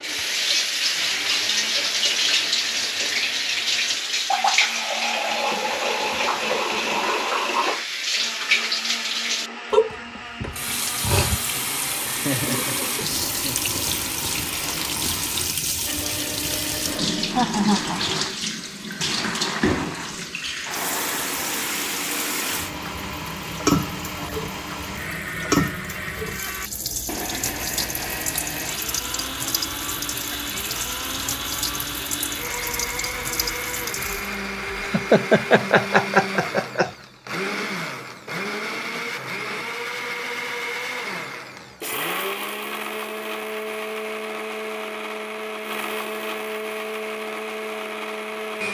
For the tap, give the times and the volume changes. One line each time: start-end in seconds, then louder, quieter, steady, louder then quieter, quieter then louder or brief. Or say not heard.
0.0-34.4 quieter.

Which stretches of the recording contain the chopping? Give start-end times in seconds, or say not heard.
not heard.